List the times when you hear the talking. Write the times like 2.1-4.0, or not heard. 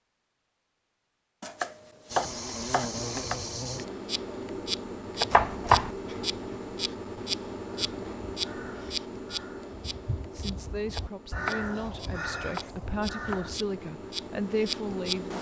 10.3-15.3.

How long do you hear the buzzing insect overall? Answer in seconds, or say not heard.
13 s.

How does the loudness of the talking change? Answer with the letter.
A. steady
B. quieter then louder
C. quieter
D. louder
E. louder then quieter
D.